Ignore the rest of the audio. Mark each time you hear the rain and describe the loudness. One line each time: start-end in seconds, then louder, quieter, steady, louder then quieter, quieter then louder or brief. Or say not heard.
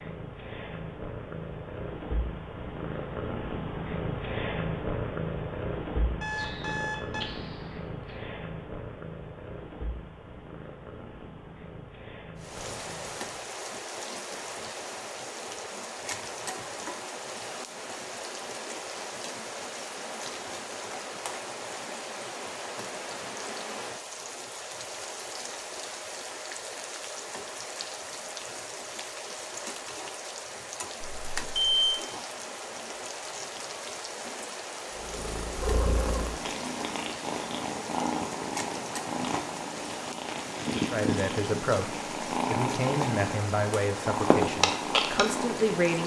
12.3-46.0 steady.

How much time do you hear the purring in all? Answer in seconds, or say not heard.
24 s.